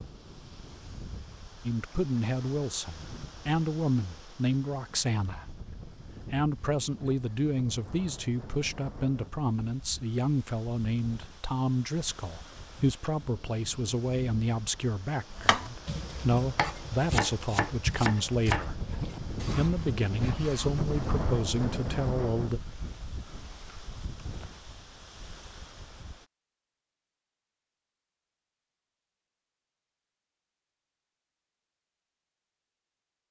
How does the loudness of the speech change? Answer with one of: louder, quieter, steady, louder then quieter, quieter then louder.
steady.